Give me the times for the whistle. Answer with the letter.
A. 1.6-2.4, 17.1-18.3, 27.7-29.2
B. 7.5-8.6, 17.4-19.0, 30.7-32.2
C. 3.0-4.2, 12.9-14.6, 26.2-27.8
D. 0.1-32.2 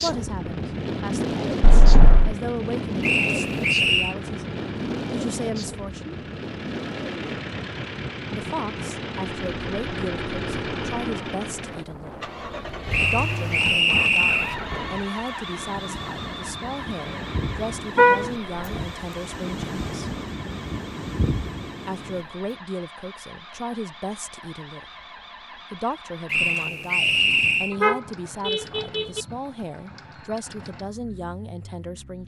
C.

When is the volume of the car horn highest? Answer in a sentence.
The loudest moment of the car horn is at 18 seconds.